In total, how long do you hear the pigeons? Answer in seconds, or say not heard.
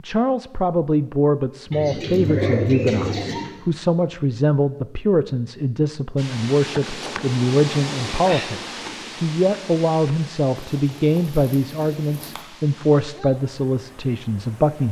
4 s.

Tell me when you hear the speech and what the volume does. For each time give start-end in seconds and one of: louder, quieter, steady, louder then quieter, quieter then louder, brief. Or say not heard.
0.0-14.8 steady.